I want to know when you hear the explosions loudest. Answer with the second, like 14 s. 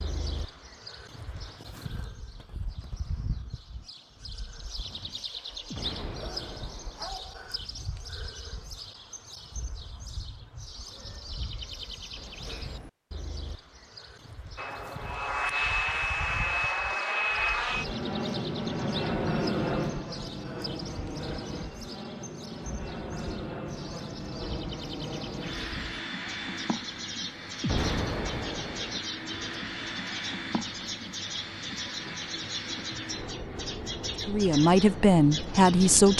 28 s.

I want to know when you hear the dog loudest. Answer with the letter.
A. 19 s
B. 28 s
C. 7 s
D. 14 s
C.